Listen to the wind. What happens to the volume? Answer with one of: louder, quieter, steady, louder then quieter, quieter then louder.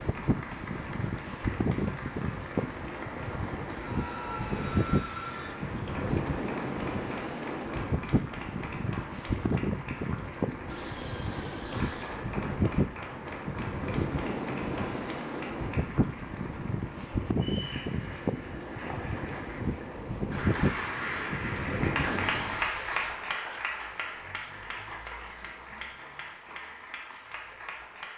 steady.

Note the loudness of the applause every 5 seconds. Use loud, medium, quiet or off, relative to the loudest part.
medium, medium, medium, medium, loud, medium.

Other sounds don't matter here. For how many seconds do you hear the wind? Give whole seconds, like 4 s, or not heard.
23 s.